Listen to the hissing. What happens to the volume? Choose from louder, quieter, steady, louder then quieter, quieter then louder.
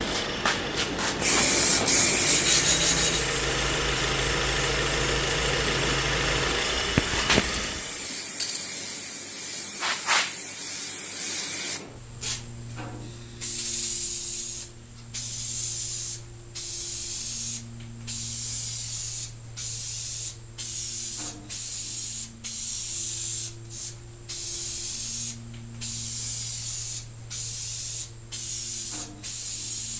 quieter.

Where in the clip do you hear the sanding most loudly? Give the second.
3 s.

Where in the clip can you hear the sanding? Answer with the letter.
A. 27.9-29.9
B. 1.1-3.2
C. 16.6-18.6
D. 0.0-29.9
B.